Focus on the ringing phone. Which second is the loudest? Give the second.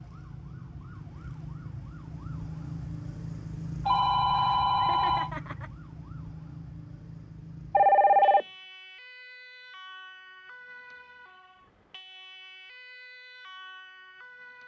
8 s.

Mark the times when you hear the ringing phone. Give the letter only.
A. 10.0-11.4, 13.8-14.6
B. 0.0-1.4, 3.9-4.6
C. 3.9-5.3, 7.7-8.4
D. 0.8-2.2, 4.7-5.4
C.